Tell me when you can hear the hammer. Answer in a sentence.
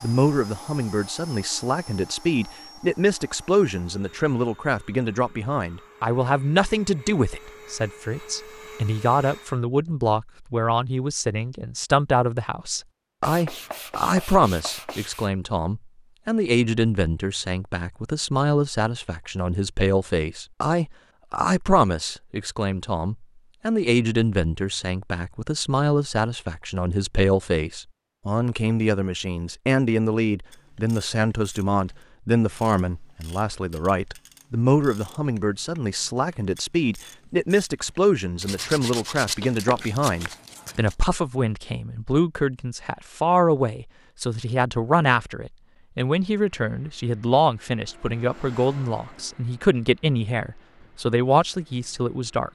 You can't hear the hammer here.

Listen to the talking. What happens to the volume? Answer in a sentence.
The volume of the talking stays about the same.